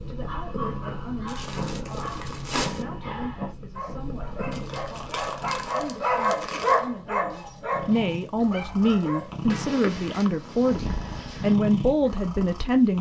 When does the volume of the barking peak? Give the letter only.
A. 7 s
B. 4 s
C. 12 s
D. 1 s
A.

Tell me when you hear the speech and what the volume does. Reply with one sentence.
The speech can be heard from 0.0 to 12.9 s, getting louder.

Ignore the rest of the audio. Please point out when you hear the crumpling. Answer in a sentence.
The crumpling can be heard from 1.2 to 2.9 s, from 4.5 to 6.8 s and from 9.4 to 10.3 s.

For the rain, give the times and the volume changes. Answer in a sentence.
You can't hear the rain here.